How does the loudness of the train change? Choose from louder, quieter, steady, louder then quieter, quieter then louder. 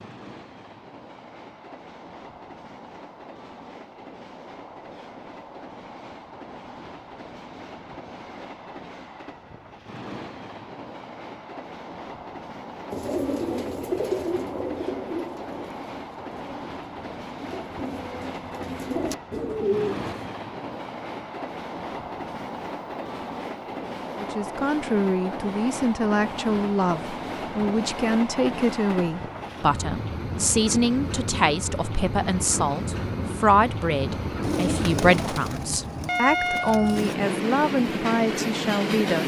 louder.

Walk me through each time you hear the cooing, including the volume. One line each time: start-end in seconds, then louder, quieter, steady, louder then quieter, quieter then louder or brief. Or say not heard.
12.9-20.3 quieter then louder
34.4-37.1 brief.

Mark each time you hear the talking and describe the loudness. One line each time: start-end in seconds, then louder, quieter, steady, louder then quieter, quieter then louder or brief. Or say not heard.
24.2-39.2 steady.